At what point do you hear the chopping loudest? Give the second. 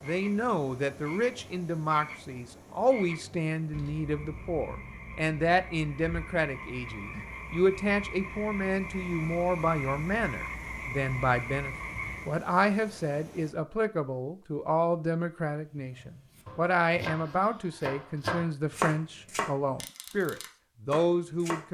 19 s.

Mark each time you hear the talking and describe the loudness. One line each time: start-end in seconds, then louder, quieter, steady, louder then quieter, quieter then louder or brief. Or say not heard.
0.0-21.6 steady.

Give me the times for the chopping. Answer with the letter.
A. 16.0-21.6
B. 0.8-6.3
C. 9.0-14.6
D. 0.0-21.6
A.